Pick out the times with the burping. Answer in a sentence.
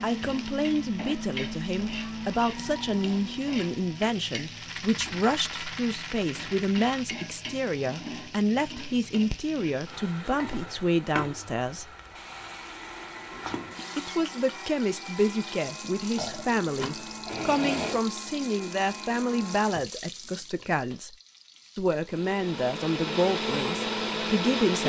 You can hear the burping from 16.1 to 18.0 s.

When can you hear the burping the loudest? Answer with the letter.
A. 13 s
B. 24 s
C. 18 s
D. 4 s
C.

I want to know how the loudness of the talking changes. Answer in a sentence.
The loudness of the talking stays about the same.